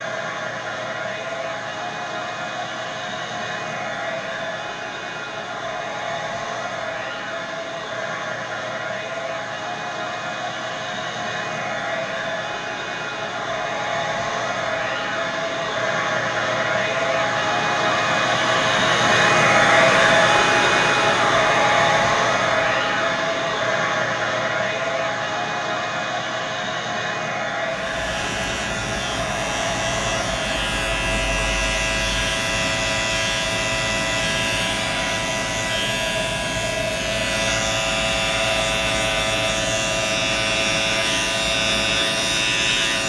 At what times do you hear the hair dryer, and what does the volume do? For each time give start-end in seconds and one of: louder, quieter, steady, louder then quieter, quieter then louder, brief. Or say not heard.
0.0-43.0 louder then quieter.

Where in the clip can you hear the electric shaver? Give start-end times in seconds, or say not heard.
27.7-43.0.